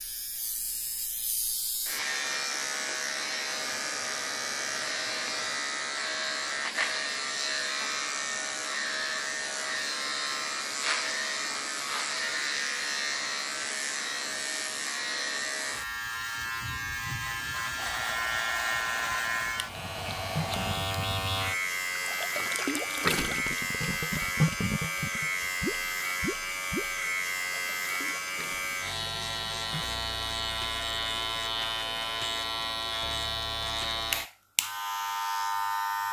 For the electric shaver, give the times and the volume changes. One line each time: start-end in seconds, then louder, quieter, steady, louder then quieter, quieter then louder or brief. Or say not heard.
0.0-36.0 steady.